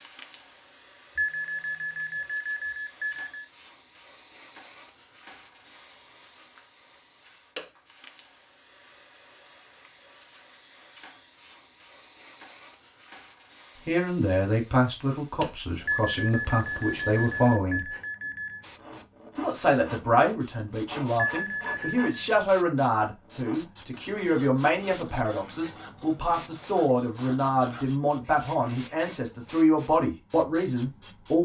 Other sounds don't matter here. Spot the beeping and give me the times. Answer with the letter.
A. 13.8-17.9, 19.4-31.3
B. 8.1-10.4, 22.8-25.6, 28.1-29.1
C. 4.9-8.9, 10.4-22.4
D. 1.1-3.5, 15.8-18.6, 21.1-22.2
D.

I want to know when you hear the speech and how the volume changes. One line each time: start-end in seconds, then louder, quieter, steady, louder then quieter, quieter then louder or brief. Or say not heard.
13.8-17.9 quieter then louder
19.4-31.3 steady.